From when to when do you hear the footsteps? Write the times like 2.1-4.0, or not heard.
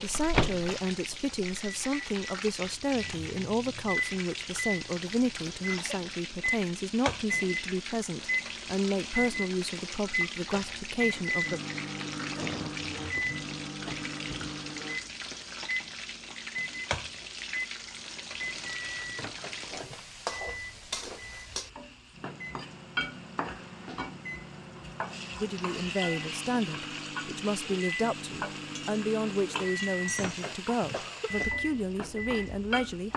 not heard.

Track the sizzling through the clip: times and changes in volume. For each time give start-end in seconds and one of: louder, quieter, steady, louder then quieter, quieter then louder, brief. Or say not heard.
0.0-33.1 steady.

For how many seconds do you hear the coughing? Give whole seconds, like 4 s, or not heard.
5 s.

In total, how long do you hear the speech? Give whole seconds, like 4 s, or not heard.
19 s.